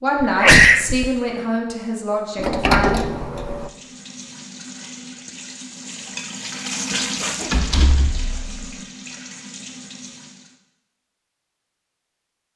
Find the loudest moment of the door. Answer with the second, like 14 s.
3 s.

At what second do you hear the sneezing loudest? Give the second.
1 s.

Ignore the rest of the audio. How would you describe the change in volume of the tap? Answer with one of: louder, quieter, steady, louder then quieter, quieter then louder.
louder then quieter.